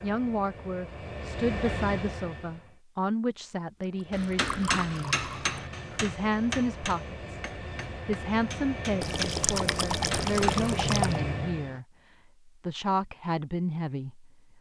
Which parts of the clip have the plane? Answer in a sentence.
The plane can be heard from 0.0 to 2.8 s and from 3.9 to 11.8 s.